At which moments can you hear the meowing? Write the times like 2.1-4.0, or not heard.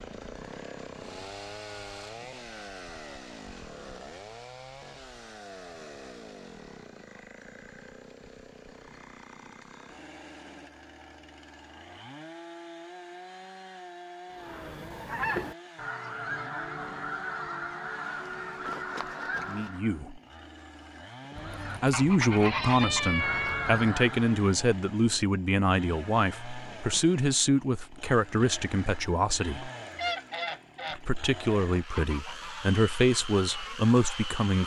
21.4-23.9.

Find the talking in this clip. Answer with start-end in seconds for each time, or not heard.
19.4-20.2, 21.8-29.7, 30.9-34.6.